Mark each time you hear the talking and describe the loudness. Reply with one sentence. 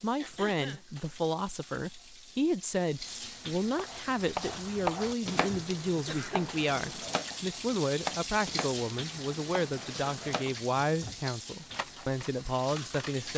You can hear the talking from 0.0 to 13.3 s, at a steady volume.